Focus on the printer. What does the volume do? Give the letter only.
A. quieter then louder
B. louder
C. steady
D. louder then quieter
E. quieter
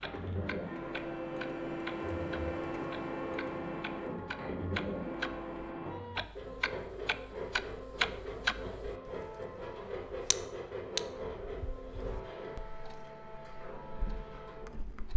E.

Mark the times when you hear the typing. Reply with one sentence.
The typing can't be heard in this clip.